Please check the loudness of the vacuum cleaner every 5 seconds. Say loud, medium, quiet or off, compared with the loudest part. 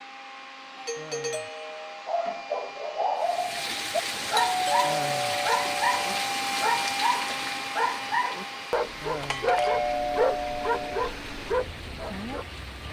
medium, loud, medium.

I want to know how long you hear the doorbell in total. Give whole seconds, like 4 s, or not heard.
5 s.